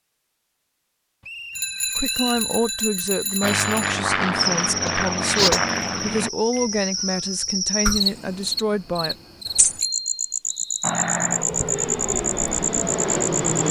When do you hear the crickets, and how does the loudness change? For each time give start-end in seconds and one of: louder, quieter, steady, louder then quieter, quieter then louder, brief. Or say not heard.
4.3-13.6 steady.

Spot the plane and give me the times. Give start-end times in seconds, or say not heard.
3.4-6.3, 10.8-13.6.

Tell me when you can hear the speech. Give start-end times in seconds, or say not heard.
1.9-9.2.